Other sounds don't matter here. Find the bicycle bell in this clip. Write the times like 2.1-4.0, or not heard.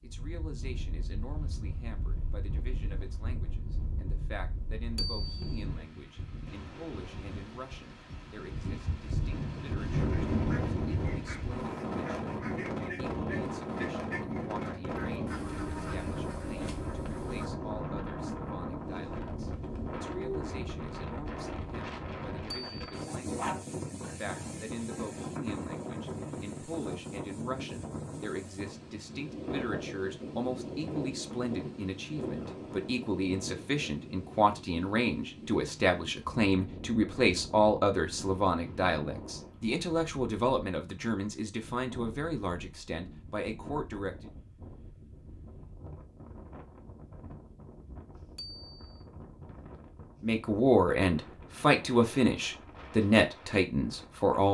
5.0-5.7, 22.5-23.1, 48.4-49.0.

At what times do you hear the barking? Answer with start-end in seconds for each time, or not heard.
23.1-24.4.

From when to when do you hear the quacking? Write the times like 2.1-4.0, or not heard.
9.9-17.5.